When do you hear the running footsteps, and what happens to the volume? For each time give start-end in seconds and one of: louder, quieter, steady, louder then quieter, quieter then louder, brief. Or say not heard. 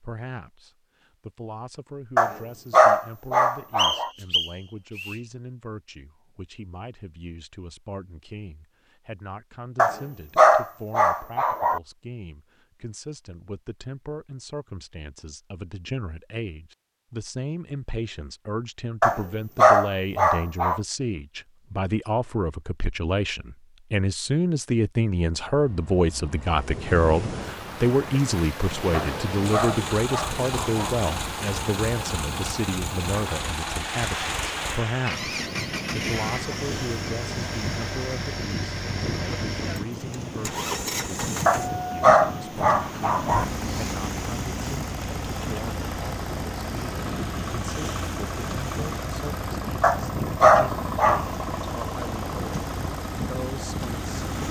not heard.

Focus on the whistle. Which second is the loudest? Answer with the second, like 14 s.
4 s.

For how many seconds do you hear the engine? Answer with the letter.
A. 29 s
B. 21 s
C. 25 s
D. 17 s
C.